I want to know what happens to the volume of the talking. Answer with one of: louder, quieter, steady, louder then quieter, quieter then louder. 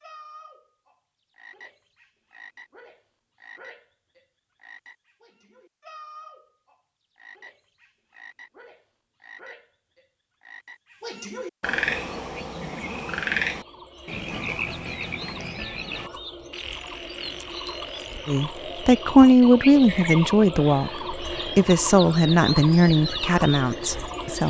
quieter.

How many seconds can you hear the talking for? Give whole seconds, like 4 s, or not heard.
6 s.